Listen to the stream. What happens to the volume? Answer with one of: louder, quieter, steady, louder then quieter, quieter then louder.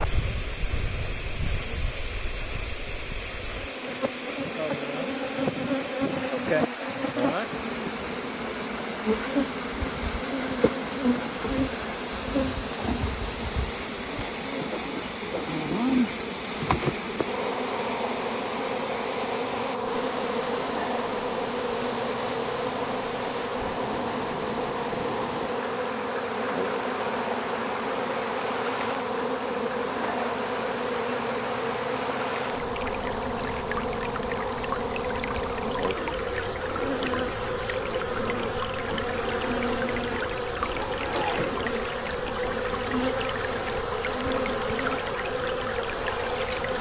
steady.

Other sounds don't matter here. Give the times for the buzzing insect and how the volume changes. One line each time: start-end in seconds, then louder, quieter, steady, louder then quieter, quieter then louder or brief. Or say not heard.
0.0-46.7 steady.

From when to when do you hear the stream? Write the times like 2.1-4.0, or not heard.
0.0-46.7.